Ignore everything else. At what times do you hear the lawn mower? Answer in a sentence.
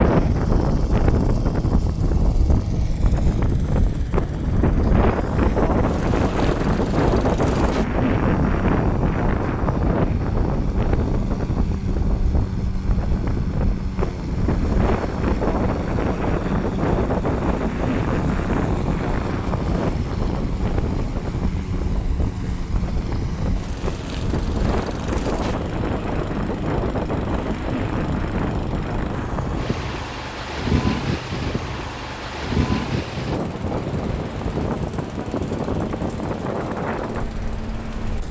The lawn mower can be heard from 0.0 to 38.2 s.